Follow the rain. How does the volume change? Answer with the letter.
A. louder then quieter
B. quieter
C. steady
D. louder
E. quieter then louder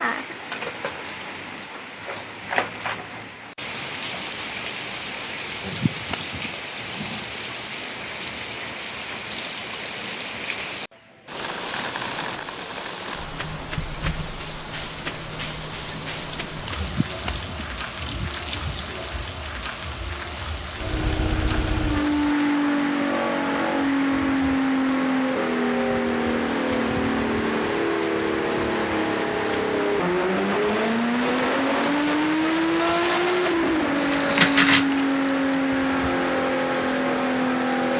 C.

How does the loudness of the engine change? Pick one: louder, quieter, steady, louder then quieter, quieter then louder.
steady.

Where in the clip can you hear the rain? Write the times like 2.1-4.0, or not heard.
0.0-37.9.